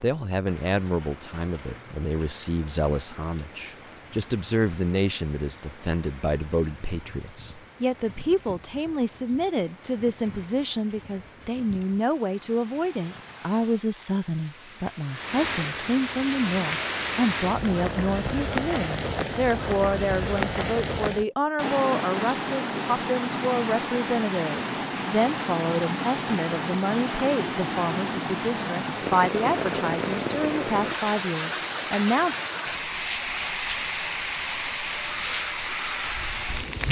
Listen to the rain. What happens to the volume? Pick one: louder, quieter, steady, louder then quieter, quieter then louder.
louder.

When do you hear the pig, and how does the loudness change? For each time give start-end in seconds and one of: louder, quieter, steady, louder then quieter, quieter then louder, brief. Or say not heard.
not heard.